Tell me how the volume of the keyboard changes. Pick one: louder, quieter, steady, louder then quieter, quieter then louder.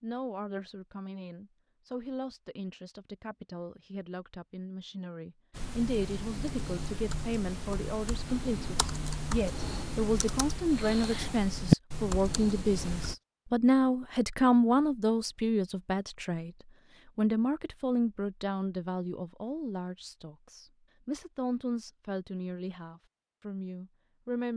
louder.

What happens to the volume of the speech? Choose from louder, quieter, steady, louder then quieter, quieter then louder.
louder then quieter.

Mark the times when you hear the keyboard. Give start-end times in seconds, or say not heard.
5.5-13.2.